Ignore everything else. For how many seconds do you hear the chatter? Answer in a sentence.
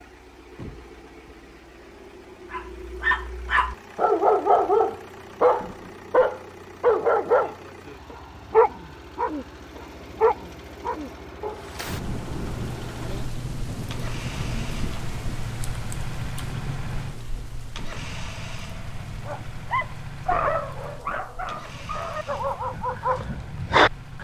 The chatter can't be heard in this clip.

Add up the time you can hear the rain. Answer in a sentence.
You can hear the rain for 13 seconds altogether.